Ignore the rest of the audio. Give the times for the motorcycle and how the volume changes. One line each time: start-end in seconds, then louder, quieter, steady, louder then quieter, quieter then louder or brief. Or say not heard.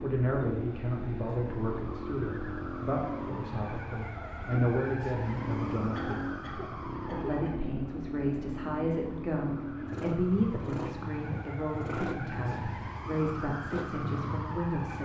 0.0-14.9 steady.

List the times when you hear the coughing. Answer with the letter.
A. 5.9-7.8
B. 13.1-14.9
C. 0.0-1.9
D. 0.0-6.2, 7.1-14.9
A.